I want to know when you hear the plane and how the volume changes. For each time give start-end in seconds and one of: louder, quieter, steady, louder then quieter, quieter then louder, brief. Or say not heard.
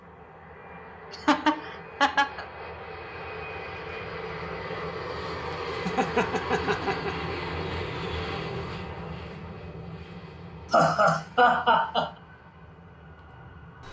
0.0-13.8 louder then quieter.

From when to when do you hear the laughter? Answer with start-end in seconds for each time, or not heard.
1.1-2.5, 5.8-7.2, 10.7-12.1.